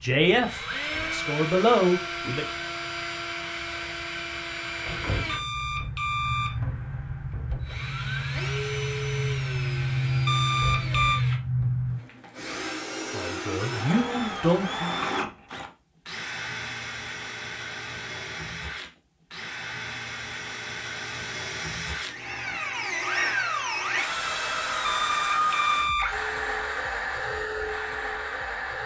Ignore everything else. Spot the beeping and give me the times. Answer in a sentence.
The beeping can be heard from 5.2 to 6.5 s, from 10.2 to 11.2 s and from 24.9 to 26.2 s.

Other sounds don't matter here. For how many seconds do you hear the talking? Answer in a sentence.
You can hear the talking for 4 seconds altogether.